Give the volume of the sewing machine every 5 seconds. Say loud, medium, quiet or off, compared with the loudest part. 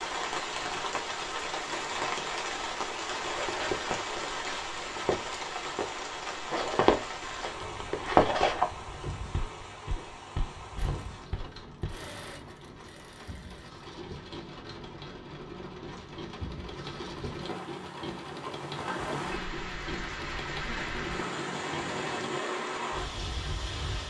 off, off, medium, loud, loud.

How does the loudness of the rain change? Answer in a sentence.
The volume of the rain goes down, then up.